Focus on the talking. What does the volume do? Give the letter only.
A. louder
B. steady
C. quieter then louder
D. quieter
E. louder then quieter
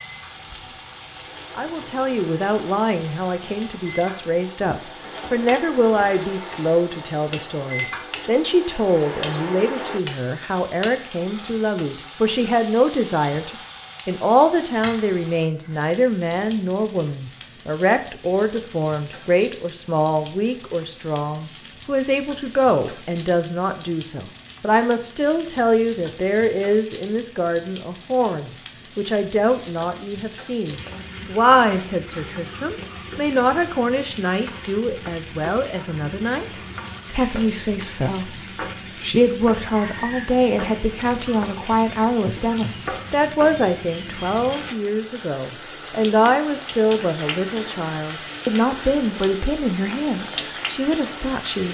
B.